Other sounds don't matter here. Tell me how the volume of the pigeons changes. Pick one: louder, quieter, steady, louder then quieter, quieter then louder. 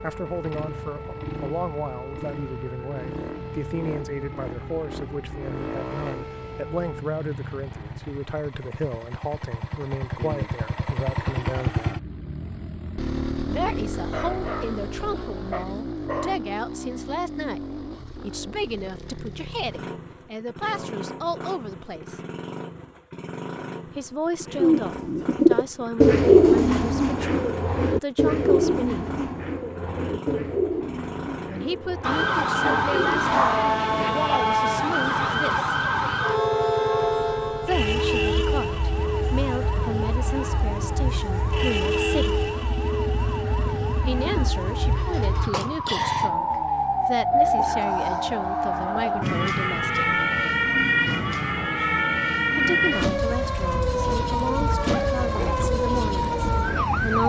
quieter.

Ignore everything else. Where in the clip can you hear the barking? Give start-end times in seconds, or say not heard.
13.9-14.8, 15.5-16.4, 32.6-34.3, 54.9-55.7.